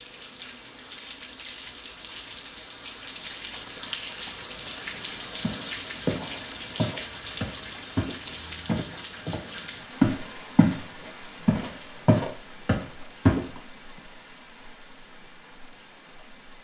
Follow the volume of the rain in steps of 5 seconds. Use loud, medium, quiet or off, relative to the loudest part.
loud, loud, medium, quiet.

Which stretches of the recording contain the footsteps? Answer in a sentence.
You can hear the footsteps from 5.4 to 10.8 s and from 11.4 to 13.4 s.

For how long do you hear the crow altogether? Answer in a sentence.
You can't hear the crow here.